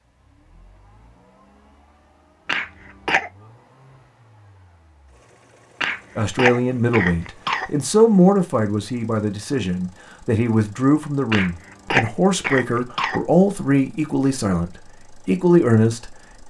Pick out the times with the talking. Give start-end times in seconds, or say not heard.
6.2-16.4.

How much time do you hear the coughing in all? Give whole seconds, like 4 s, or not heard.
5 s.